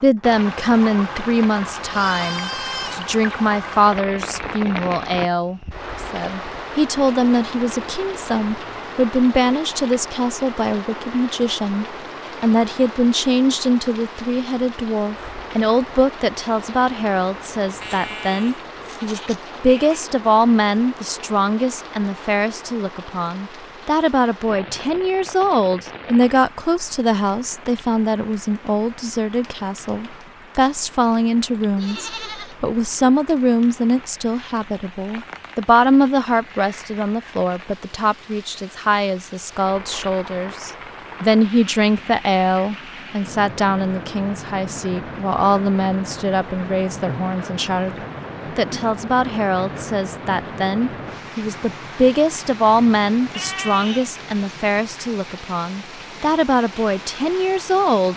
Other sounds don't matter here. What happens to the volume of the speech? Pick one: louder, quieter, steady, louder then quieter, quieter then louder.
steady.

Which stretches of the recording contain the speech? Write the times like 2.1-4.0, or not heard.
0.0-48.0, 48.5-58.1.